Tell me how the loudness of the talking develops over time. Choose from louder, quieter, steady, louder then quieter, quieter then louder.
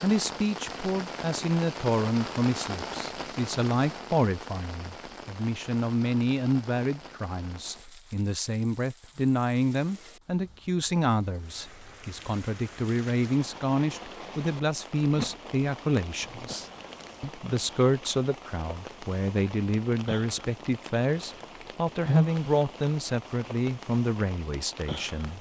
steady.